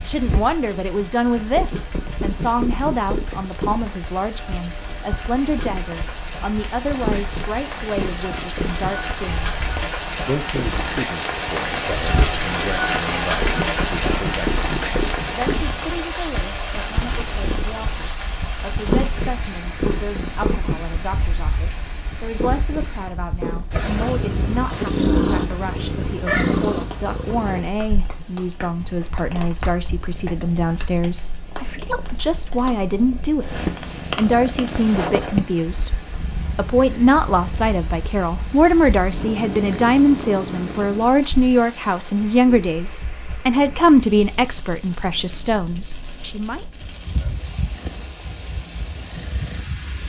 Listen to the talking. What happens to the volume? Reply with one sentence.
The volume of the talking goes down, then up.